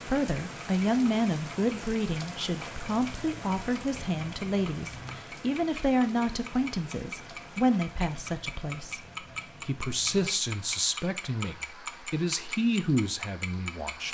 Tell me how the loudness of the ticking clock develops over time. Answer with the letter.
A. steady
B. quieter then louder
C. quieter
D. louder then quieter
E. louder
E.